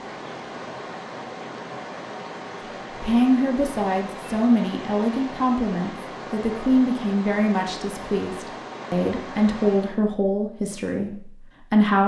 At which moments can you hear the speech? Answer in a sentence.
You can hear the speech from 2.9 to 12.0 s.